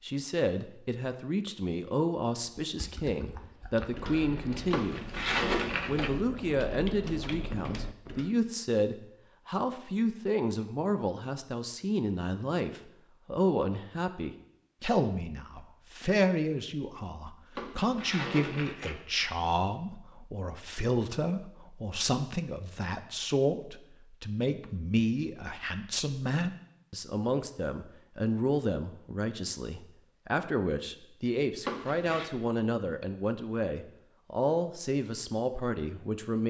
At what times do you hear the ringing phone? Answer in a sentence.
The ringing phone can't be heard in this clip.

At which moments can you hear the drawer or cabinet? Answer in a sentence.
The drawer or cabinet can be heard from 4.7 to 6.2 s, from 17.6 to 19.0 s and from 31.6 to 32.3 s.